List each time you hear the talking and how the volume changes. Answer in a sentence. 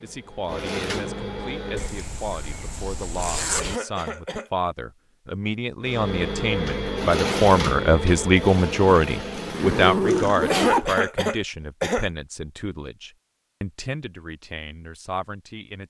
The talking can be heard from 0.0 to 15.8 s, getting louder then quieter.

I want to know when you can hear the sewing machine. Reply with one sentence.
The sewing machine can be heard from 0.0 to 2.0 s and from 5.8 to 10.6 s.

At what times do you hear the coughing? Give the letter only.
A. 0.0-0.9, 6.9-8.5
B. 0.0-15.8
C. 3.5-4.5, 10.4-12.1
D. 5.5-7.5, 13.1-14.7
C.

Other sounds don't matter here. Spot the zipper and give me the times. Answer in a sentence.
You can hear the zipper from 1.8 to 3.8 s and from 9.3 to 10.9 s.